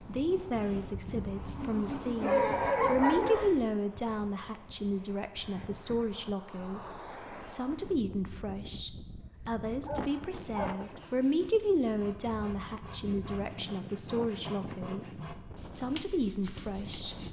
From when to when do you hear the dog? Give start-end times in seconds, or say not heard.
2.2-3.5, 9.2-10.8.